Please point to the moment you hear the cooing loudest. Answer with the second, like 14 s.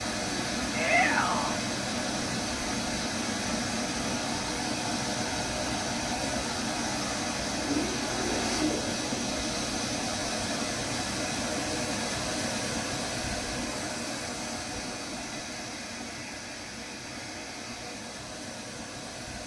8 s.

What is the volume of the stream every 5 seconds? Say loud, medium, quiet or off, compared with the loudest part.
loud, loud, loud, medium.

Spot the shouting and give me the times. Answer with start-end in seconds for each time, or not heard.
0.7-1.6.